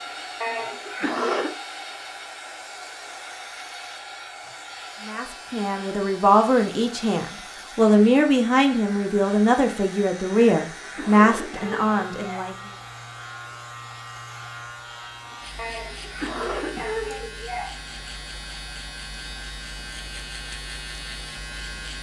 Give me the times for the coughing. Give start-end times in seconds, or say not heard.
0.4-1.5, 10.3-12.5, 15.6-17.8.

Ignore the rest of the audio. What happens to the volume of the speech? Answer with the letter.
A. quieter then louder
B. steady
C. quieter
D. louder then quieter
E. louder
B.